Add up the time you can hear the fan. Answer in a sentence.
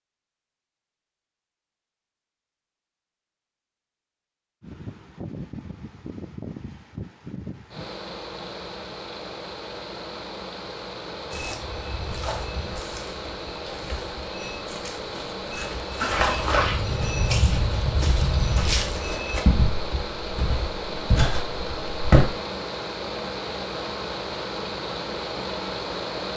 The fan can be heard for 22 seconds in total.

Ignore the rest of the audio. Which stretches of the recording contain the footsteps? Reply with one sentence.
The footsteps can be heard from 11.3 to 22.2 s.